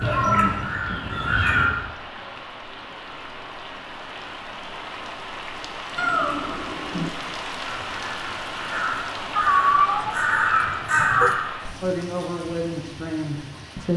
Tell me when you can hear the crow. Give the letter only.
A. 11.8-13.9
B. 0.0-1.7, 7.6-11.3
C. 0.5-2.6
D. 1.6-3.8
B.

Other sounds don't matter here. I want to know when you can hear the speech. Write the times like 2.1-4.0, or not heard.
11.8-13.9.